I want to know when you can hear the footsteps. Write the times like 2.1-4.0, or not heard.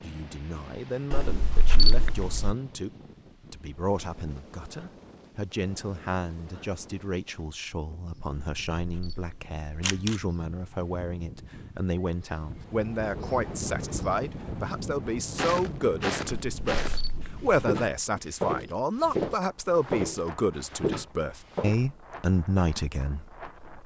15.3-21.8.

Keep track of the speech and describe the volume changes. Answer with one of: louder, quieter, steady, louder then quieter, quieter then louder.
louder.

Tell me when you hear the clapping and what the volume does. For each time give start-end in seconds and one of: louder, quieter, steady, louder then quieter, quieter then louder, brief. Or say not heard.
not heard.